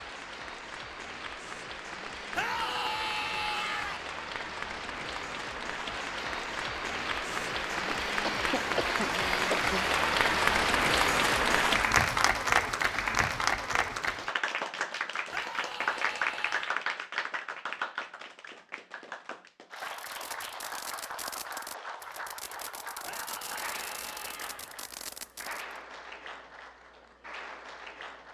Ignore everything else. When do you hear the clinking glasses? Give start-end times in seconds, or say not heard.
not heard.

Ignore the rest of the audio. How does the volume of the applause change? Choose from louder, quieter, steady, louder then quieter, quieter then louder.
louder then quieter.